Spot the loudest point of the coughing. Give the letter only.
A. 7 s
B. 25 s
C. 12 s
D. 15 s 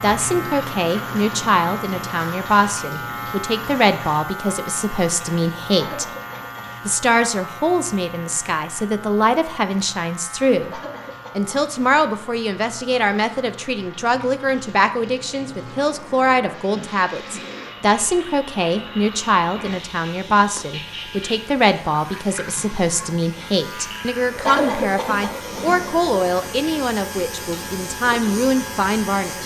B.